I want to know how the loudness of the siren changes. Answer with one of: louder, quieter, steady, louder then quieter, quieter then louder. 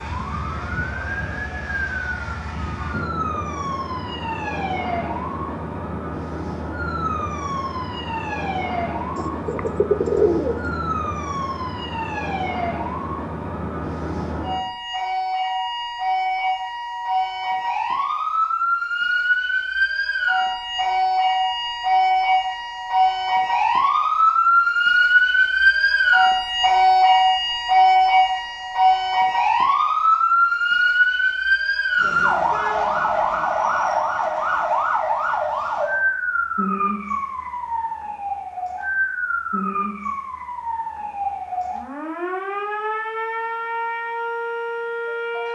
louder then quieter.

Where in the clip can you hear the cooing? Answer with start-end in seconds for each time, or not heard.
9.2-10.8.